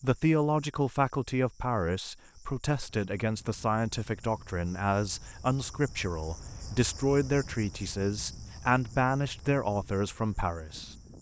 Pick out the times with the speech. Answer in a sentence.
You can hear the speech from 0.0 to 10.9 s.